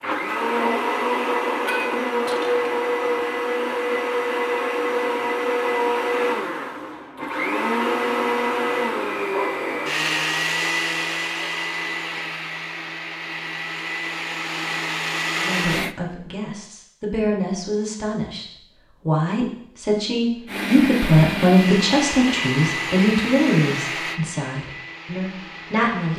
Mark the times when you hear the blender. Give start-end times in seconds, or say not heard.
0.0-15.9, 20.4-26.1.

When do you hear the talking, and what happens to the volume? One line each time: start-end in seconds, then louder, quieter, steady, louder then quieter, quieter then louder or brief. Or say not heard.
15.3-26.1 louder then quieter.